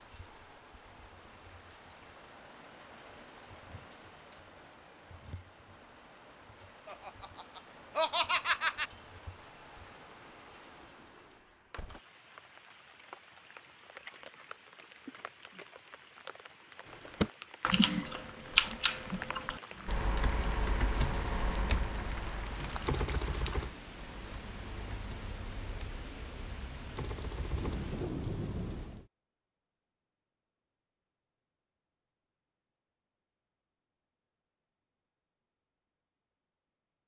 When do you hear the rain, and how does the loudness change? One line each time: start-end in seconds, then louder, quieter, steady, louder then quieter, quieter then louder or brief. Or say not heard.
0.0-29.1 louder.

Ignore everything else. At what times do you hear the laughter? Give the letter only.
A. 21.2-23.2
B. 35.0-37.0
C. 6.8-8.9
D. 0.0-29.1
C.